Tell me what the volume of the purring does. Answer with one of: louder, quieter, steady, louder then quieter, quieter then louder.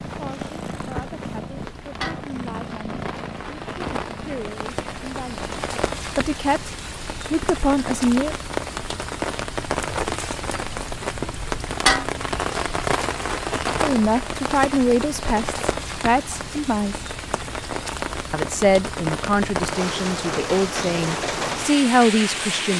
quieter.